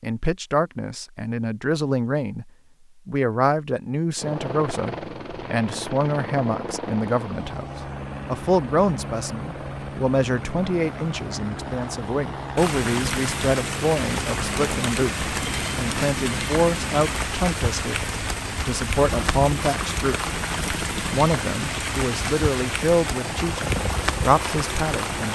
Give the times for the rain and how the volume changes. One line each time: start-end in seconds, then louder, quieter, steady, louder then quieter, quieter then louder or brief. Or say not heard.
12.6-25.2 steady.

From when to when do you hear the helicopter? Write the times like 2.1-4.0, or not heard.
4.2-25.2.